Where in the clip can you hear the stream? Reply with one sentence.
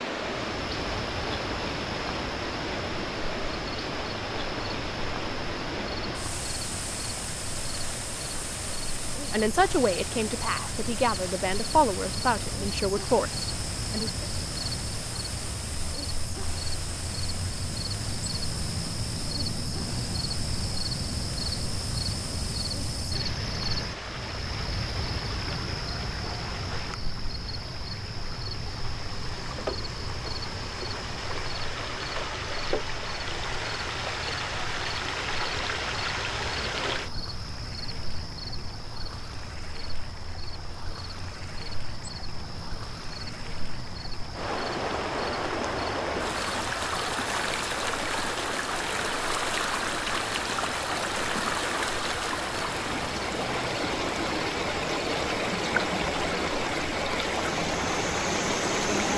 The stream can be heard from 0.0 to 59.1 s.